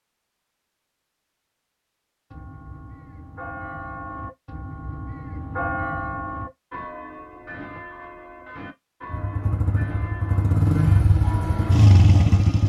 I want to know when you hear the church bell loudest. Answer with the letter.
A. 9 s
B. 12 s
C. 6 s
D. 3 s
C.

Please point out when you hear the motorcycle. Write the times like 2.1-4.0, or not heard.
9.1-12.6.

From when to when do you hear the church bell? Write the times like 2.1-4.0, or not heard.
2.3-11.8.